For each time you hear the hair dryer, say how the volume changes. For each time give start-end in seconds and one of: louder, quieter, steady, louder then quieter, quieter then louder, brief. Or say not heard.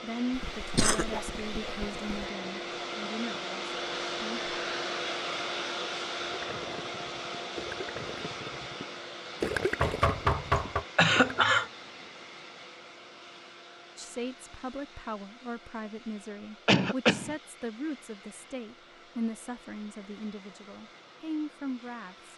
0.0-22.3 quieter.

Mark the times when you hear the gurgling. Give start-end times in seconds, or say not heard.
6.2-11.6.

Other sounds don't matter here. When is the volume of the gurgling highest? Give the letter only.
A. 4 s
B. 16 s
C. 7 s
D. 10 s
D.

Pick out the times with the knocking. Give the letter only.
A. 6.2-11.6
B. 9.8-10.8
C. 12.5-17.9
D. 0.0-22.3
B.